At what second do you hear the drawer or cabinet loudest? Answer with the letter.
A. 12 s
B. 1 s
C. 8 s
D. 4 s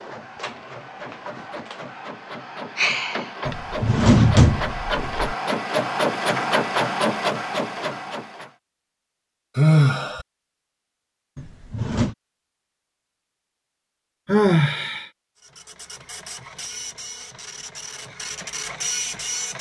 D.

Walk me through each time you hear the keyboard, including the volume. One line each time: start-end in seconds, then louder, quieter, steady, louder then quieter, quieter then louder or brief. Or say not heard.
not heard.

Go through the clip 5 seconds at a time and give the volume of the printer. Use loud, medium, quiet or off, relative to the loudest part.
medium, loud, off, medium.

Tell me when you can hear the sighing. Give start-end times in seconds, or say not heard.
2.8-3.2, 9.6-10.2, 14.2-15.1.